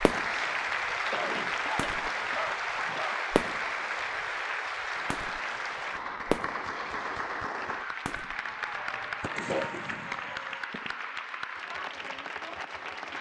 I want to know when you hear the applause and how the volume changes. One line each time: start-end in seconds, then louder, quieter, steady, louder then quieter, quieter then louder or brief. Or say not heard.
0.0-13.1 quieter.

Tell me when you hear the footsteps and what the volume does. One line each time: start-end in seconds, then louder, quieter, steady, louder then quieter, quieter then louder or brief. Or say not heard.
not heard.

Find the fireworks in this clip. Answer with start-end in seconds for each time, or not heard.
0.0-0.9, 1.8-4.3, 5.1-7.2, 8.1-11.0.